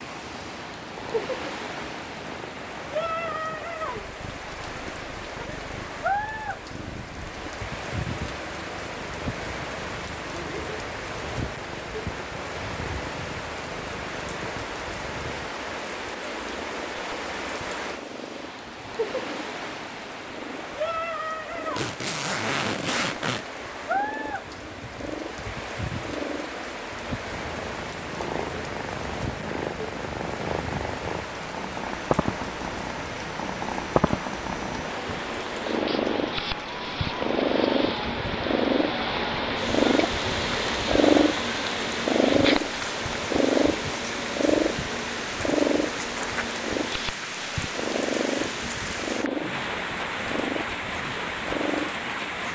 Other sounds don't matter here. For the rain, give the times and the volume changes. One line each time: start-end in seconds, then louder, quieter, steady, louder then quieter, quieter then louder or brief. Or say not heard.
0.0-52.5 steady.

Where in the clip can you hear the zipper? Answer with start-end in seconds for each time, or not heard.
21.8-23.4.